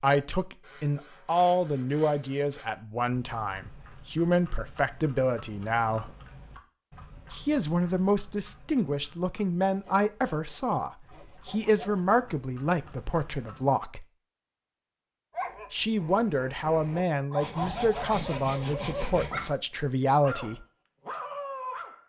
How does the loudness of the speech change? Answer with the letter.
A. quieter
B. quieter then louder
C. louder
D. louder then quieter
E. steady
E.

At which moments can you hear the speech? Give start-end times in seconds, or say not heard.
0.0-6.2, 7.3-14.1, 15.7-20.6.